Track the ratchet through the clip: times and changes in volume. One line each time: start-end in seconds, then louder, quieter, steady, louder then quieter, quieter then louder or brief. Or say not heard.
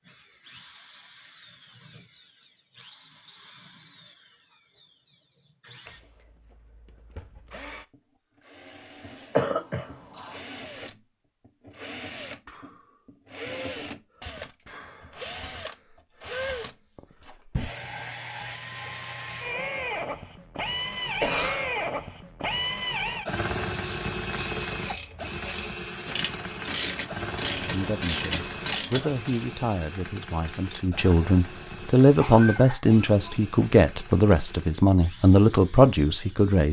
23.8-29.4 louder.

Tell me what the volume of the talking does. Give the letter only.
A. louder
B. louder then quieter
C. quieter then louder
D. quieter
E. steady
A.